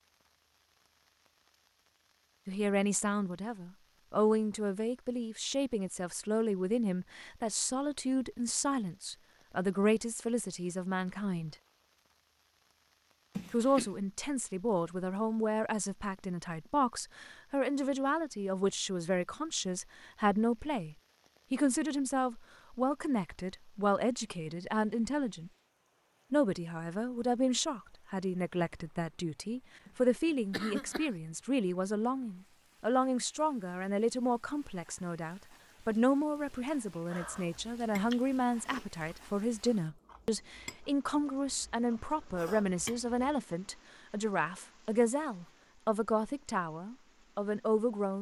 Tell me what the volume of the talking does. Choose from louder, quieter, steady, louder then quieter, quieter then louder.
steady.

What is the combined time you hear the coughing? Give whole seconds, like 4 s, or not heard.
2 s.